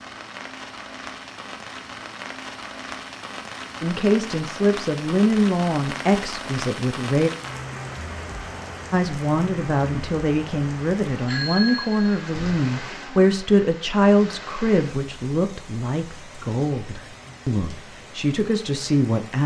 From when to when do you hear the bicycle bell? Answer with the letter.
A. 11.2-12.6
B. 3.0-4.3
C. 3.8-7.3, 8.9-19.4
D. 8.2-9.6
A.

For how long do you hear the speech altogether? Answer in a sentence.
You can hear the speech for 14 seconds altogether.